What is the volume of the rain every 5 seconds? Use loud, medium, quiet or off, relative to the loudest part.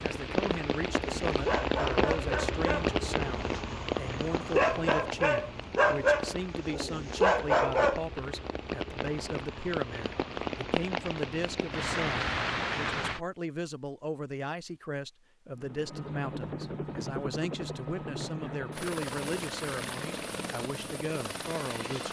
loud, medium, loud, off, off.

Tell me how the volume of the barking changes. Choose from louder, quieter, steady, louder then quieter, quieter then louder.
quieter then louder.